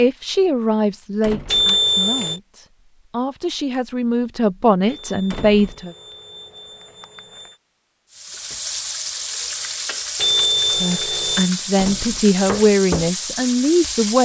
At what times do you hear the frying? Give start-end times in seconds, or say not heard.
8.1-14.2.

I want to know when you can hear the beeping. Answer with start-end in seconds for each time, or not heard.
1.5-2.4, 4.8-7.6, 10.2-11.5.